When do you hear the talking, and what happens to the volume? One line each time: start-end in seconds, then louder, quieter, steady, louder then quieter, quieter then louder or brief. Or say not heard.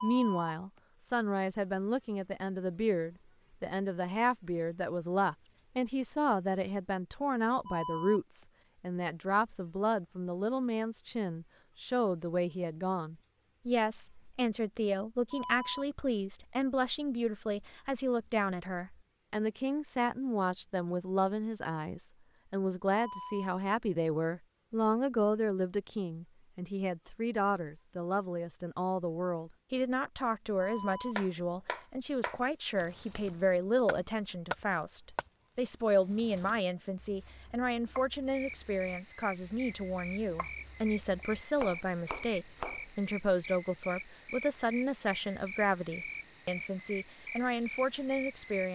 0.0-48.6 steady.